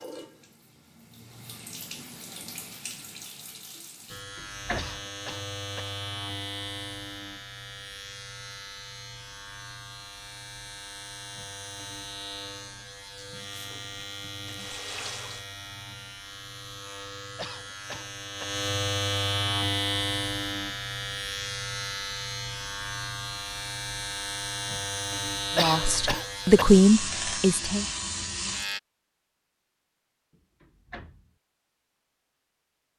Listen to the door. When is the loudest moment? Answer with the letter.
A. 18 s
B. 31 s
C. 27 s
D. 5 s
D.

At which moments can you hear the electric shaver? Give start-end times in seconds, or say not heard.
4.0-28.8.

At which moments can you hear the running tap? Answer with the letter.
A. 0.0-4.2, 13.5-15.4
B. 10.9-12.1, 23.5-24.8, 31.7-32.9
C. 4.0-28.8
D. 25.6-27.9
A.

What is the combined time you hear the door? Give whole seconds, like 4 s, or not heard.
2 s.